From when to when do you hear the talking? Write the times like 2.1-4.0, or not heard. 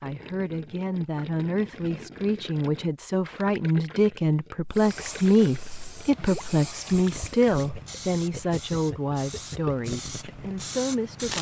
0.0-11.3.